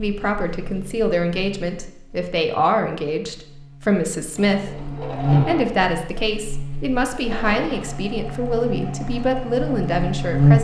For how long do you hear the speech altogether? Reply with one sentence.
The speech can be heard for 10 seconds in total.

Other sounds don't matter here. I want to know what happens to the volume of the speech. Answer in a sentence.
The loudness of the speech stays about the same.